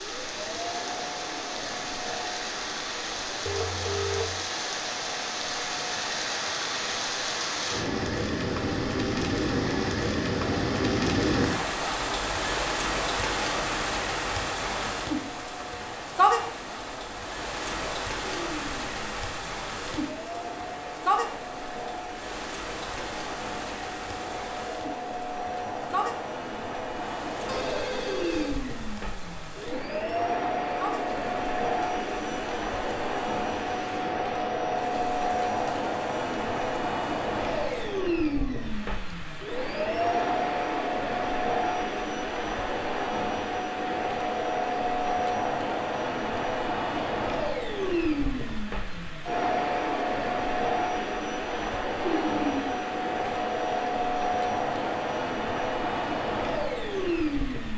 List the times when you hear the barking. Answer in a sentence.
The barking can't be heard in this clip.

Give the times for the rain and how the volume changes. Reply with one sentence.
The rain can be heard from 0.0 to 57.7 s, getting quieter.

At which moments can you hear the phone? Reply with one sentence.
You can hear the phone from 3.5 to 4.5 s, from 27.4 to 28.6 s and from 52.0 to 52.8 s.